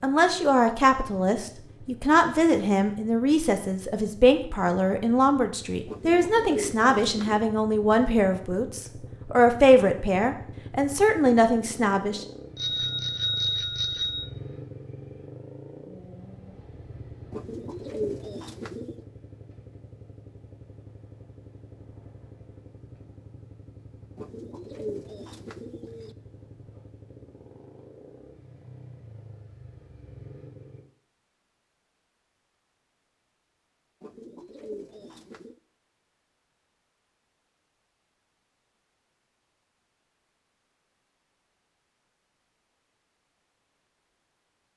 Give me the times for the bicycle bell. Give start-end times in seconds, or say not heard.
12.6-14.3.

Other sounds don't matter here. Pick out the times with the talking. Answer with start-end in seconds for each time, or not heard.
0.0-12.2.